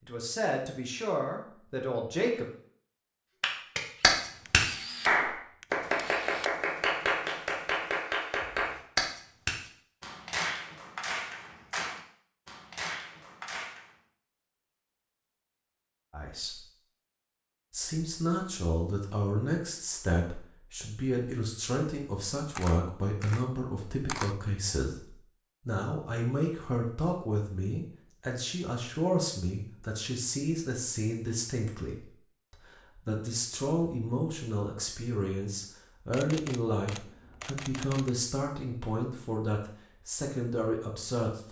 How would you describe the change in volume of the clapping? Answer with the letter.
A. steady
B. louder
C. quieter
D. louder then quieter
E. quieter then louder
C.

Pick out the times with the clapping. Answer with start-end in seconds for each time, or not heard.
3.4-13.9.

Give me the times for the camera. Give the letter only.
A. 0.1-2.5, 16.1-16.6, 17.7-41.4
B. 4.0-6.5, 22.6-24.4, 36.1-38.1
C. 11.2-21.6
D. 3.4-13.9
B.